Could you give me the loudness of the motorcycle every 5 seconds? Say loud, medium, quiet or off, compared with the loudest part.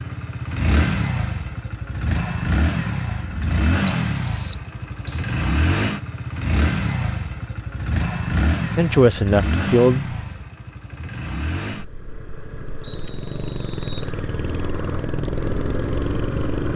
loud, loud, medium, loud.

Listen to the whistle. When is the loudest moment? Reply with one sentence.
The volume of the whistle peaks at 4 seconds.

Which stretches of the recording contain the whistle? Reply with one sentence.
The whistle can be heard from 3.9 to 5.4 s and from 12.8 to 14.1 s.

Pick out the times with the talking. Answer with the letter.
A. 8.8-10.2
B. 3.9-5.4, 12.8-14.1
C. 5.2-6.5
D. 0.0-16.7
A.